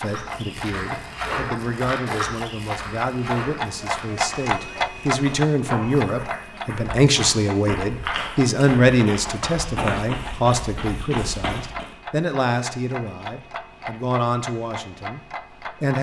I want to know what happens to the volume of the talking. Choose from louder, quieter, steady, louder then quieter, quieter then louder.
louder then quieter.